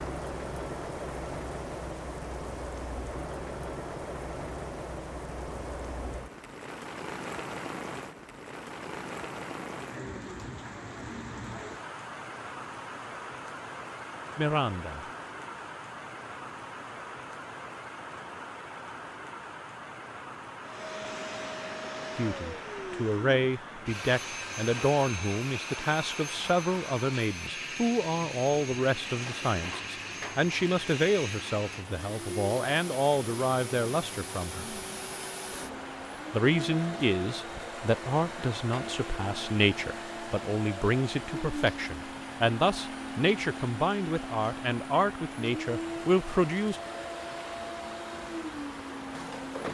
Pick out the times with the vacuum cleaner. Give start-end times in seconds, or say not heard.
20.6-49.7.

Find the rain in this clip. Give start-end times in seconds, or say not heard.
0.0-49.7.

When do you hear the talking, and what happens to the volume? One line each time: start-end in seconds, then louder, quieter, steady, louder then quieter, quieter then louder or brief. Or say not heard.
14.3-15.1 brief
22.1-34.8 steady
36.3-46.8 steady.